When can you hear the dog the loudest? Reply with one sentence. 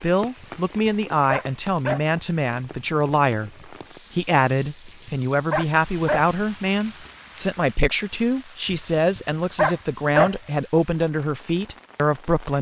The volume of the dog peaks at 10 seconds.